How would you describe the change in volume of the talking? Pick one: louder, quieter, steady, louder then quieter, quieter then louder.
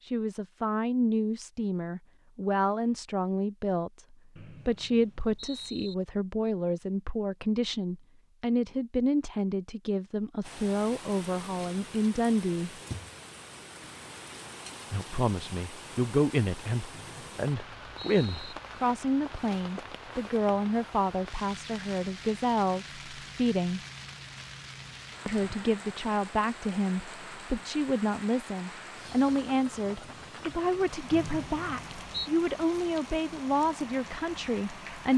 steady.